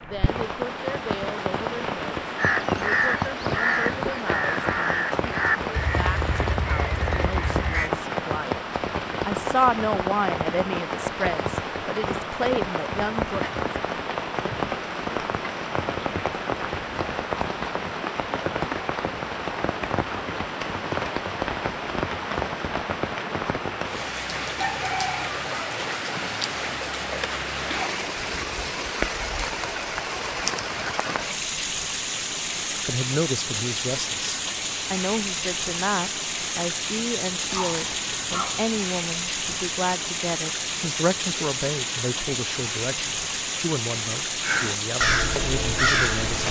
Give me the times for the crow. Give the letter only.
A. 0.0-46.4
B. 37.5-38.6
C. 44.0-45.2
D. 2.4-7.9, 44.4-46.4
D.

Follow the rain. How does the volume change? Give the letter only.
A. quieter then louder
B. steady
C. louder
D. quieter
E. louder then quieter
B.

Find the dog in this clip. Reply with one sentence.
The dog can be heard from 37.5 to 38.6 s.